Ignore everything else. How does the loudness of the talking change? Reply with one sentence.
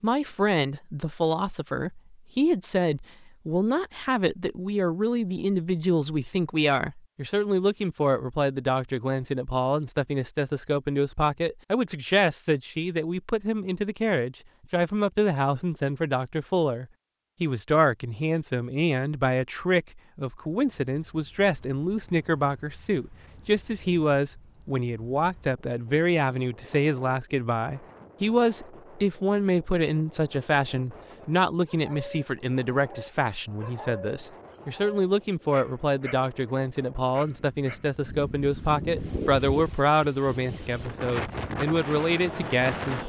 The volume of the talking stays about the same.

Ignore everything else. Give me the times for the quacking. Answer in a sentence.
The quacking can't be heard in this clip.